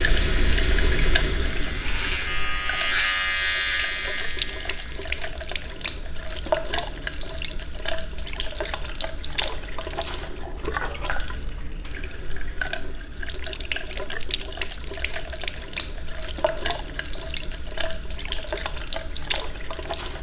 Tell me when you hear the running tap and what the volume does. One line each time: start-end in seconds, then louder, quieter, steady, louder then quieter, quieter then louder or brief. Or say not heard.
0.0-20.1 steady.